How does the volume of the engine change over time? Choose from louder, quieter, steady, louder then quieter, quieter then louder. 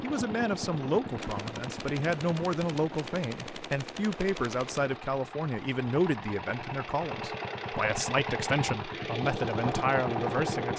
quieter then louder.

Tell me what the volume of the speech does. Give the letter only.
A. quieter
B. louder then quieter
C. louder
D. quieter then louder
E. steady
E.